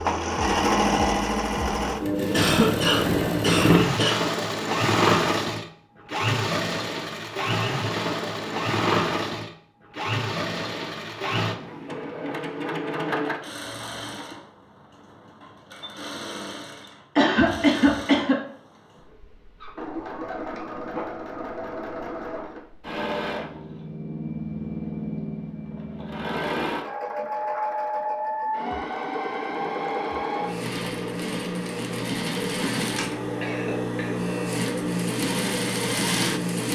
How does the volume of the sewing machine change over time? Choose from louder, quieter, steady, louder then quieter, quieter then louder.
quieter then louder.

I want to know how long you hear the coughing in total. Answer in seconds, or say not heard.
4 s.